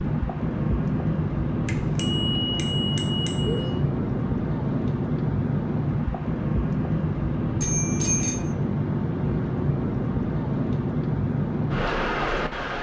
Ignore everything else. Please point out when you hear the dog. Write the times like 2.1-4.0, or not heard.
not heard.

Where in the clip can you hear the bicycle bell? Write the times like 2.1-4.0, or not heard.
1.6-3.8, 7.6-8.4.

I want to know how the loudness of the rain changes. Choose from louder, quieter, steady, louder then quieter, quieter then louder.
steady.